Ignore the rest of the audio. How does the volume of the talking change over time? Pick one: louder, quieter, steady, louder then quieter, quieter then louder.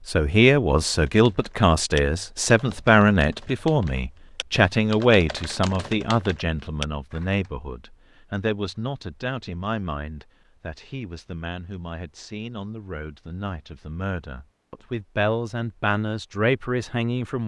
quieter then louder.